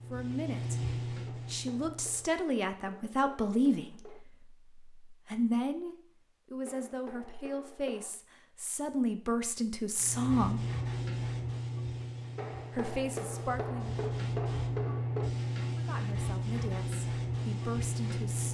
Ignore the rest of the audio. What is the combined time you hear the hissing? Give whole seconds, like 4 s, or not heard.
11 s.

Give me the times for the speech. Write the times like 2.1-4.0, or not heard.
0.1-10.6, 12.7-13.9, 15.6-18.4.